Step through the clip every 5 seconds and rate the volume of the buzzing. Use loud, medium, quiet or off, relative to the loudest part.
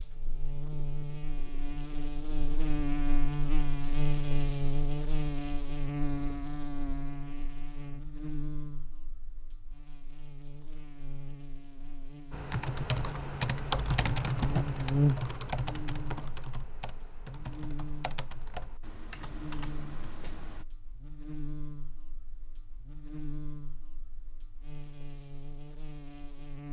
loud, medium, medium, loud, quiet, quiet.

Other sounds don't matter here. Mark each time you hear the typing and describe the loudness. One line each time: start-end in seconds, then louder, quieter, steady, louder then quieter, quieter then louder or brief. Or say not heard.
12.3-20.6 quieter.